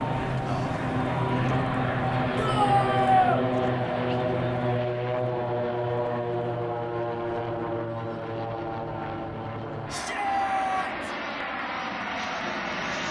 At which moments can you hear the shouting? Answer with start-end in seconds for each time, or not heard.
2.4-3.5, 9.9-11.2.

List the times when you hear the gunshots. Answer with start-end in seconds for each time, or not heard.
not heard.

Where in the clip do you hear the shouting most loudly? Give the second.
3 s.